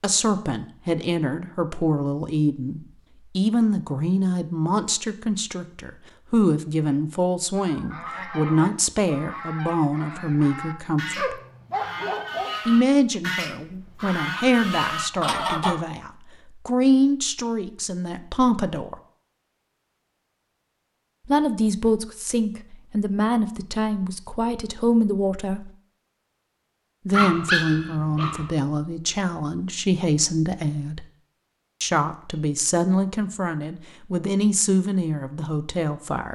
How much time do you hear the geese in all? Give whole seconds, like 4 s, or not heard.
8 s.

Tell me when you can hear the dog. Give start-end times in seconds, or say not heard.
11.2-12.6, 27.1-28.5.